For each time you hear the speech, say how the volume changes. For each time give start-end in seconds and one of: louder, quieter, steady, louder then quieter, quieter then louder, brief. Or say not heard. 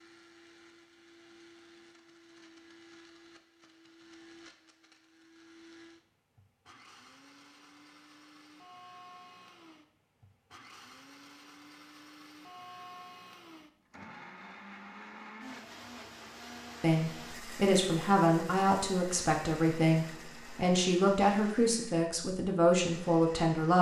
16.8-23.7 steady.